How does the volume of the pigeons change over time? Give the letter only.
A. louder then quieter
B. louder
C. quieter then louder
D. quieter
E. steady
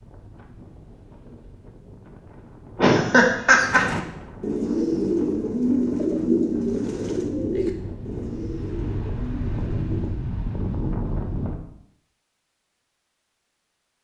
D.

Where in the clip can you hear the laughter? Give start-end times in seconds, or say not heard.
2.8-3.8.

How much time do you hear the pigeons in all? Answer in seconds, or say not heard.
7 s.